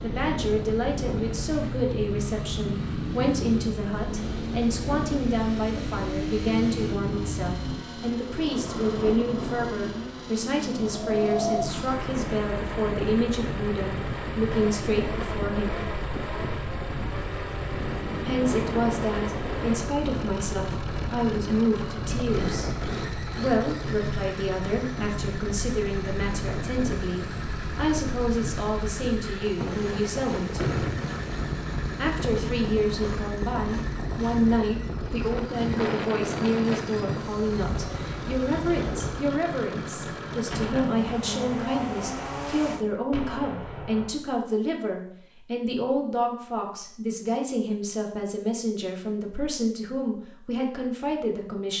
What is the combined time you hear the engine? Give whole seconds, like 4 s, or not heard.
43 s.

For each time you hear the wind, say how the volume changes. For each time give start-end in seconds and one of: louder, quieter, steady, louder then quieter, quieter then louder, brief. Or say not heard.
0.0-39.4 steady.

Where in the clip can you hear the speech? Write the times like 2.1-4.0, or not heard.
0.0-15.8, 18.2-22.7, 23.4-30.8, 31.9-51.7.